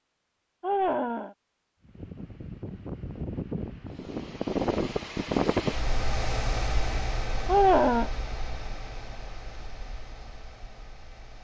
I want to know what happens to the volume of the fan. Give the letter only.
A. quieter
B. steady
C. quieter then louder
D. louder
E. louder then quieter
E.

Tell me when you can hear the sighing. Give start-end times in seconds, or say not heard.
0.6-1.4, 7.5-8.1.